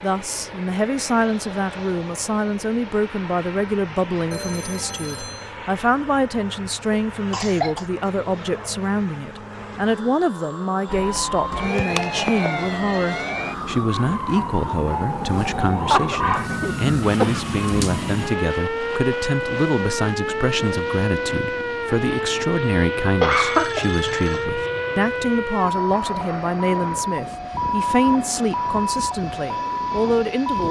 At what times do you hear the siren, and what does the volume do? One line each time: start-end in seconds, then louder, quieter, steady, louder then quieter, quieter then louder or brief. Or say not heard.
10.8-30.6 steady.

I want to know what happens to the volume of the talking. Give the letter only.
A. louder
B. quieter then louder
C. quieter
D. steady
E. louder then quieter
D.